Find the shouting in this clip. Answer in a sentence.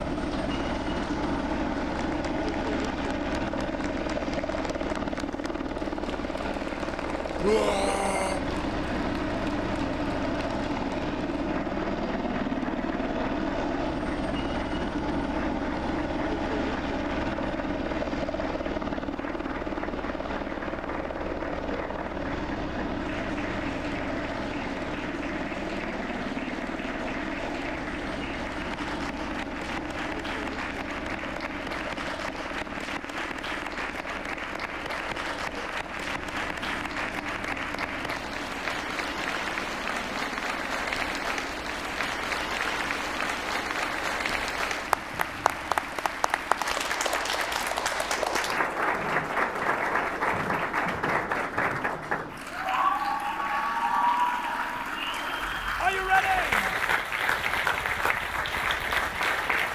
The shouting can be heard from 7.4 to 8.4 s and from 55.8 to 56.8 s.